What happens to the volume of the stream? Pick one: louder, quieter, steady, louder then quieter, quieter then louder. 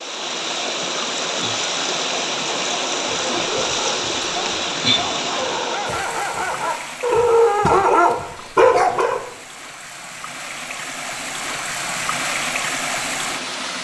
quieter then louder.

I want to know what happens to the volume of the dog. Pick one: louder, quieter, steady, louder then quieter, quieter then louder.
louder.